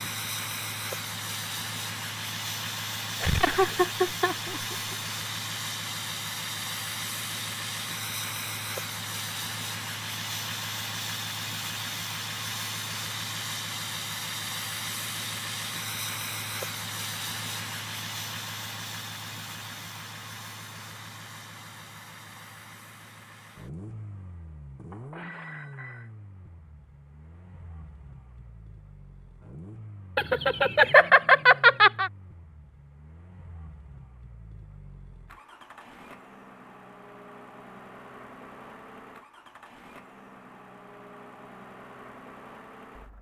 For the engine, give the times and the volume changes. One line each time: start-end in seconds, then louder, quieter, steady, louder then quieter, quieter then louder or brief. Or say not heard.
0.0-43.1 quieter.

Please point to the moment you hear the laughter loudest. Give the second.
31 s.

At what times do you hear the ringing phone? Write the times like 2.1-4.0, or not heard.
24.9-26.1.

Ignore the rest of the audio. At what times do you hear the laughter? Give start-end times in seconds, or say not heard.
3.2-5.0, 30.1-32.1.